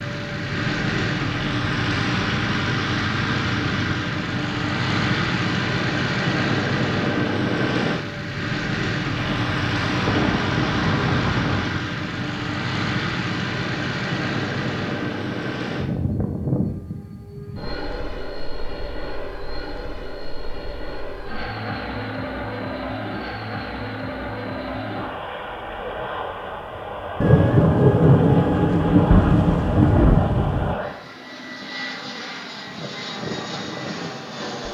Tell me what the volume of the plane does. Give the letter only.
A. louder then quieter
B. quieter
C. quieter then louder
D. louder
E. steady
B.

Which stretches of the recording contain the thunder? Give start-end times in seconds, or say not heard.
9.2-11.8, 27.2-30.8.